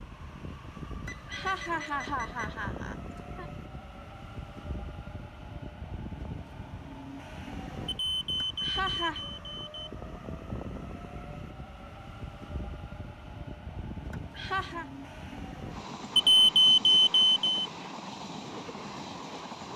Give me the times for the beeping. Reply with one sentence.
The beeping can be heard from 1.1 to 2.5 s, from 7.8 to 9.9 s and from 16.1 to 17.6 s.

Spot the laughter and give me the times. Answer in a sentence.
You can hear the laughter from 1.1 to 3.5 s, from 8.4 to 9.2 s and from 14.1 to 14.8 s.